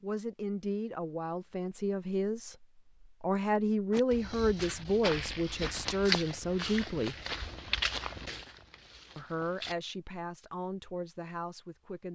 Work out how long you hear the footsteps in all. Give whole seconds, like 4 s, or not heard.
6 s.